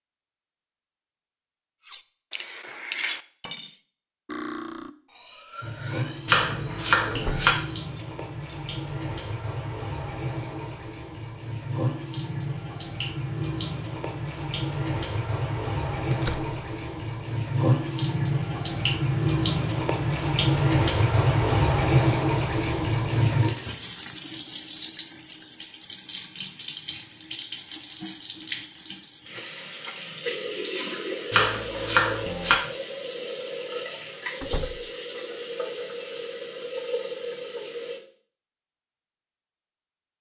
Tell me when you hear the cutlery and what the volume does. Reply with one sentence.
You can hear the cutlery from 1.9 to 8.8 s, getting quieter.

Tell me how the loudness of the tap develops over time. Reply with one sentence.
The loudness of the tap goes up, then down.